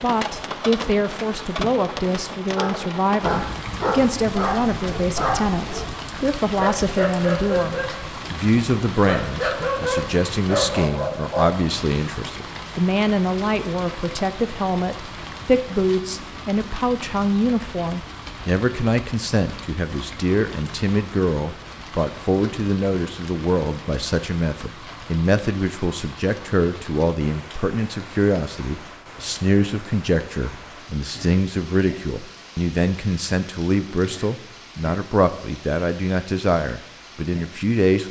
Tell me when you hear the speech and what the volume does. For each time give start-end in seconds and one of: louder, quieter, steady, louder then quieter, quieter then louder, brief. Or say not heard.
0.0-38.0 steady.